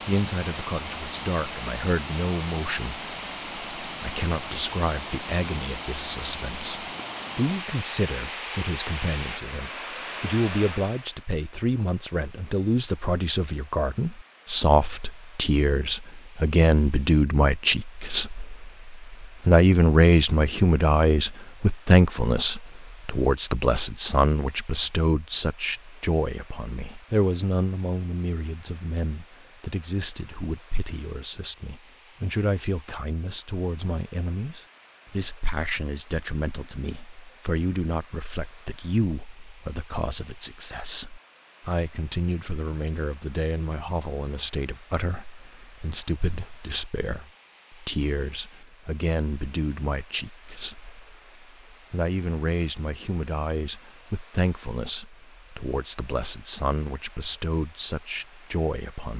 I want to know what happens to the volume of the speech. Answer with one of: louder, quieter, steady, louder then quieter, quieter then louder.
louder then quieter.